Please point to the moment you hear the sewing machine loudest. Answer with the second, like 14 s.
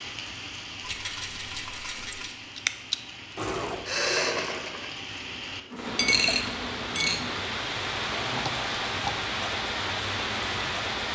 4 s.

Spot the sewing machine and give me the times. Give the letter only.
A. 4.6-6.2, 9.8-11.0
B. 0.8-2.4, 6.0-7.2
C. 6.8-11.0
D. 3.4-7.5
D.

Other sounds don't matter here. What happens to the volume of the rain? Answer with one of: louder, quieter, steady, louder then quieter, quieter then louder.
louder.